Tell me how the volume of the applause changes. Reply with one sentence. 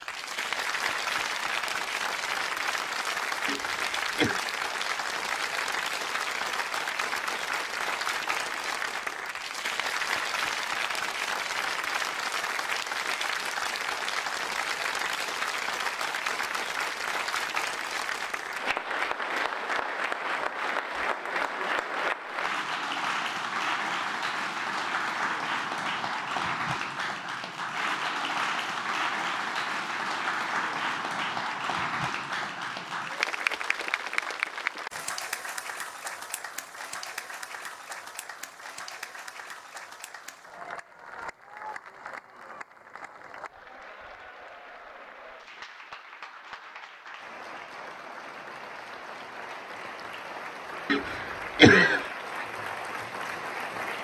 The loudness of the applause goes down.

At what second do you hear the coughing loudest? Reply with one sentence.
The volume of the coughing peaks at 52 seconds.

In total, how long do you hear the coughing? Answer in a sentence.
You can hear the coughing for 2 seconds altogether.